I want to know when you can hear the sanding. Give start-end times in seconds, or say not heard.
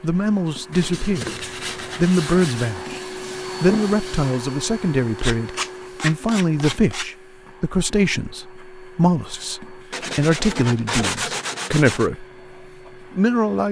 0.7-2.8, 5.2-7.1, 9.9-12.1.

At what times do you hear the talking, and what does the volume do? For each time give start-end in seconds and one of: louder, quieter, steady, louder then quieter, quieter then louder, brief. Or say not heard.
0.0-1.3 brief
1.9-3.0 brief
3.6-12.2 steady
13.1-13.6 brief.